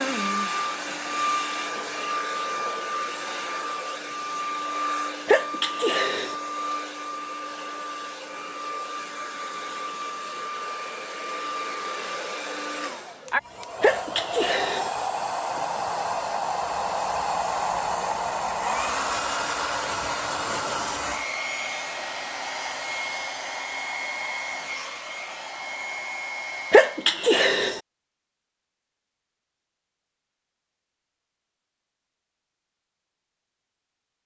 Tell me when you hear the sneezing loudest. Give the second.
27 s.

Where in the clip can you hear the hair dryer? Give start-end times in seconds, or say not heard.
0.0-27.2.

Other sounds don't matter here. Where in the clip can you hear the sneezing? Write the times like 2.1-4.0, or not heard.
5.2-6.3, 13.8-14.9, 26.7-27.8.